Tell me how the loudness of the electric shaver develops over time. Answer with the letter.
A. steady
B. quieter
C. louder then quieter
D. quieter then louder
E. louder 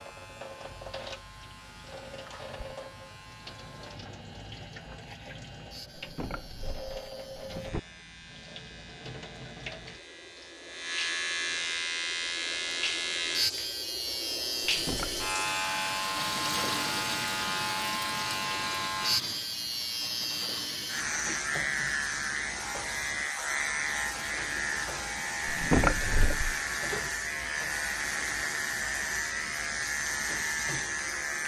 E.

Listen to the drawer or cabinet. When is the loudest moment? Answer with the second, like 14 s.
26 s.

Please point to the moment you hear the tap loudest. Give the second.
17 s.